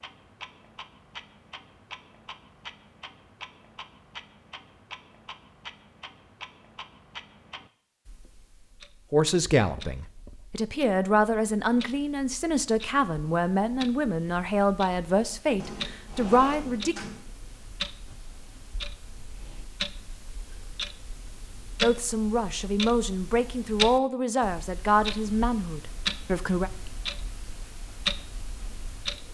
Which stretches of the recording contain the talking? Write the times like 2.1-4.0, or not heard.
9.1-17.1, 21.8-26.7.